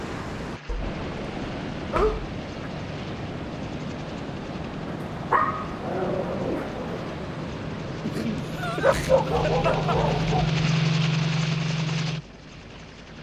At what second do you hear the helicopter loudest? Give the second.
11 s.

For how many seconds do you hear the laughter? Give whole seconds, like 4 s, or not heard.
2 s.